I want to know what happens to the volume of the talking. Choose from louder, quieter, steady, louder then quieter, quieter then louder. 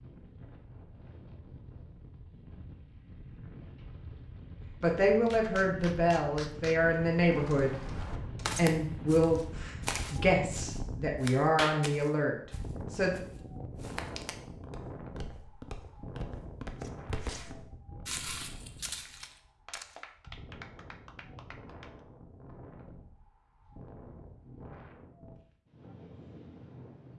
steady.